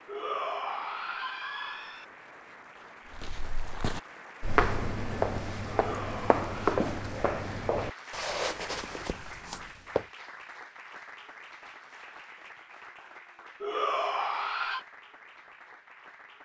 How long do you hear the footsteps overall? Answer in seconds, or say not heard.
7 s.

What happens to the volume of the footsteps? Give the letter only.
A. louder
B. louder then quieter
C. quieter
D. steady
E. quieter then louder
C.